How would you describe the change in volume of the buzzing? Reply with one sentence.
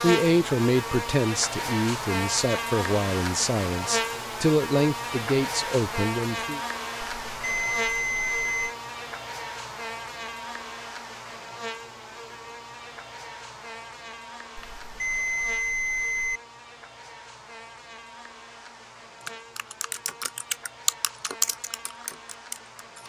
The loudness of the buzzing goes down.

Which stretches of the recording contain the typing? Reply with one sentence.
You can hear the typing from 19.2 to 23.0 s.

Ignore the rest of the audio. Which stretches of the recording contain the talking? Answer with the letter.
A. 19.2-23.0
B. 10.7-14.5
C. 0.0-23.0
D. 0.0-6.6
D.